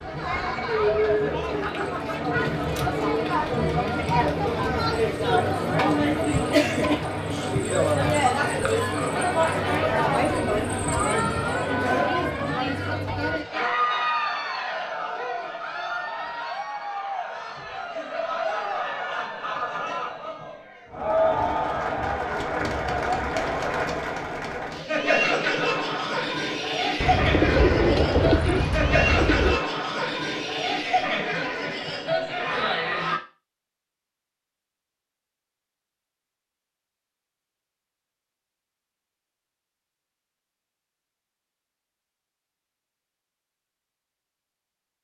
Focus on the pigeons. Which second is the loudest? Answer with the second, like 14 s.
28 s.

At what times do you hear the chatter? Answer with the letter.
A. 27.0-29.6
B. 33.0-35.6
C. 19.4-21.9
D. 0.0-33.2
D.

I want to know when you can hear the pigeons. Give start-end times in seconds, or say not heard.
27.0-29.6.